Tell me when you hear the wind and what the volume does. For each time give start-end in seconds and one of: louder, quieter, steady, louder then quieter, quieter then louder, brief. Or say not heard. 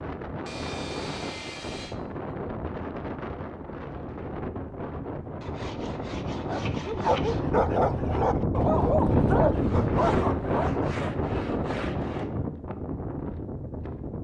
0.0-14.2 louder then quieter.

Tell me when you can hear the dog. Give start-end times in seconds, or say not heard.
6.5-10.7.